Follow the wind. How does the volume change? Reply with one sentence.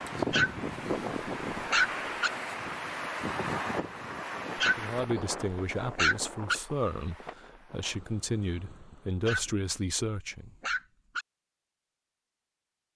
The loudness of the wind goes down.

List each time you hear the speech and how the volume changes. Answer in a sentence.
The speech can be heard from 4.6 to 10.6 s, getting quieter then louder.